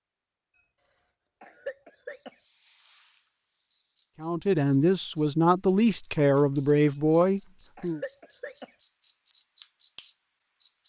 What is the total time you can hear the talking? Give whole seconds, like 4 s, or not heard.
4 s.